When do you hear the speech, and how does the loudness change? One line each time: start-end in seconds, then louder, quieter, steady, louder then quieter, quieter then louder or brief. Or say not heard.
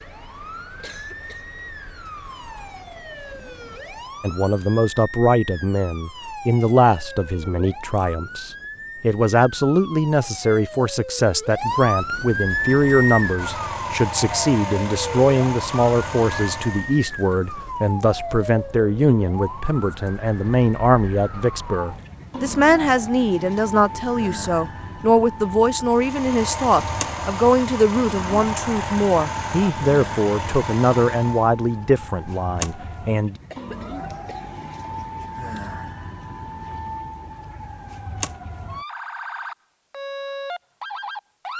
4.2-33.4 steady.